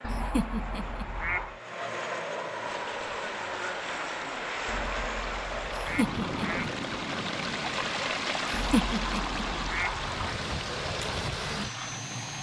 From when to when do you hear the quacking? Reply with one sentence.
You can hear the quacking from 0.0 to 1.6 s, from 4.7 to 6.7 s and from 8.5 to 10.3 s.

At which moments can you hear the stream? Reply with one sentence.
The stream can be heard from 2.6 to 12.3 s.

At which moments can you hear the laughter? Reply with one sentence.
You can hear the laughter from 0.1 to 1.1 s, from 5.8 to 6.7 s and from 8.6 to 9.4 s.